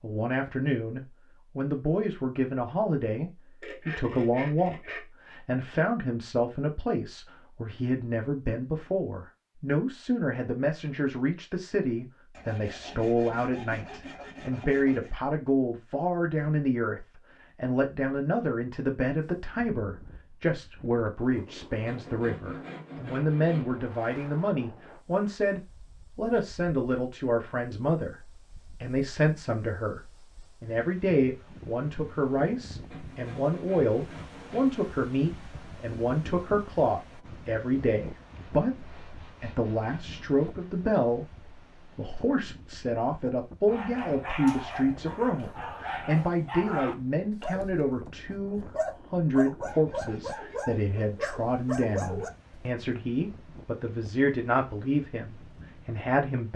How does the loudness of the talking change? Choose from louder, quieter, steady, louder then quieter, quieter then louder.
steady.